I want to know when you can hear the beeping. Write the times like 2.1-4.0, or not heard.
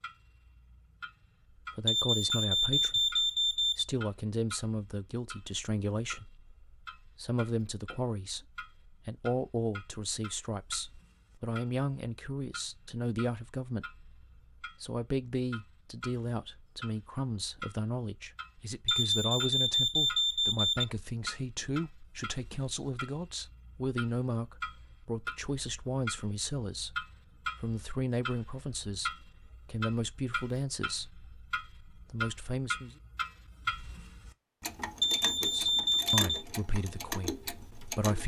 1.9-3.9, 18.9-20.9, 35.0-36.5.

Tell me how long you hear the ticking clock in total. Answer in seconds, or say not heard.
38 s.